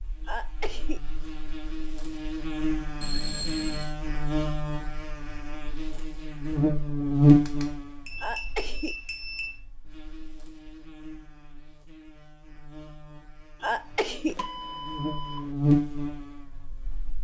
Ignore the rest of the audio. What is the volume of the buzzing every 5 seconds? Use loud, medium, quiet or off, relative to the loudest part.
medium, loud, quiet, loud.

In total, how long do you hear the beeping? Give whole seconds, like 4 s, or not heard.
4 s.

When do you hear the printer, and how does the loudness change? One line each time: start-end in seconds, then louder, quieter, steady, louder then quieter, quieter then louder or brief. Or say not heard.
not heard.